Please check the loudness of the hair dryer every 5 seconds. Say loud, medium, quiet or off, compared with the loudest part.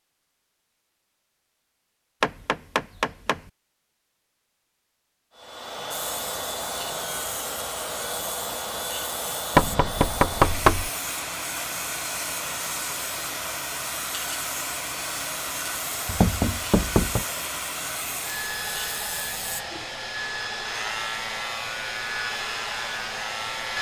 off, loud, loud, loud, loud.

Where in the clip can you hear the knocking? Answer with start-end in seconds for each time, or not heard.
2.2-3.4, 9.6-10.9, 16.1-17.2.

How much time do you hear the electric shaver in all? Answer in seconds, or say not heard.
18 s.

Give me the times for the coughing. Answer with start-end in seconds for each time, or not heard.
not heard.